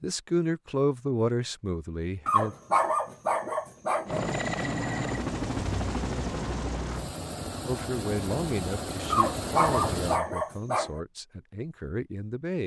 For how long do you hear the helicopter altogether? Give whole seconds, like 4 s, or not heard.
6 s.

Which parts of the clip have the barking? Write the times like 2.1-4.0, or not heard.
2.2-4.2, 9.1-11.0.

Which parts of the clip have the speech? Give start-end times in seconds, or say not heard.
0.0-2.5, 7.7-12.6.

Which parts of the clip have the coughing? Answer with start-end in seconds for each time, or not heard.
not heard.